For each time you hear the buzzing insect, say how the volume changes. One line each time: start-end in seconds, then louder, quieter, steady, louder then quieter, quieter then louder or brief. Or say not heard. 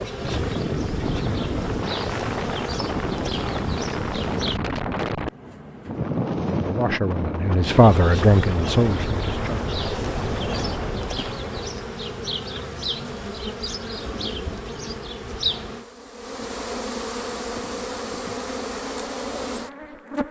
0.0-4.6 steady
7.7-20.2 steady.